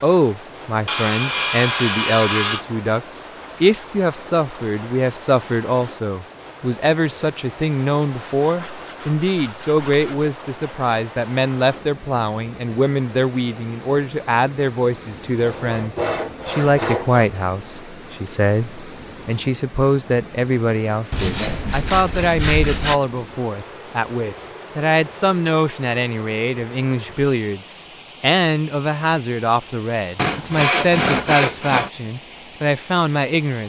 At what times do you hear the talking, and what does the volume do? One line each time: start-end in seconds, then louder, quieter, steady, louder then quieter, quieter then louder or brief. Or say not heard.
0.0-33.6 steady.